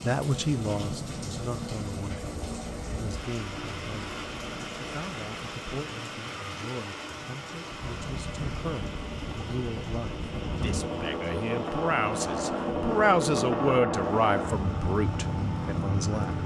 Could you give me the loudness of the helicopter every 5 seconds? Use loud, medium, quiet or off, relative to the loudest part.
medium, medium, loud, loud.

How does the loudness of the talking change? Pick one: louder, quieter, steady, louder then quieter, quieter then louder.
quieter then louder.